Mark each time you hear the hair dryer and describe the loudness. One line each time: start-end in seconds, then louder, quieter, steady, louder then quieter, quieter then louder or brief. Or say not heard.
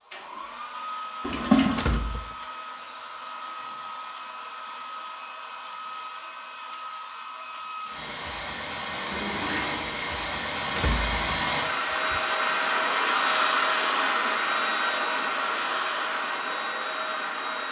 0.0-17.6 louder.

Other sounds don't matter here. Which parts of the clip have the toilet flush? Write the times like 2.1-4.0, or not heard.
1.2-2.0, 8.9-10.4.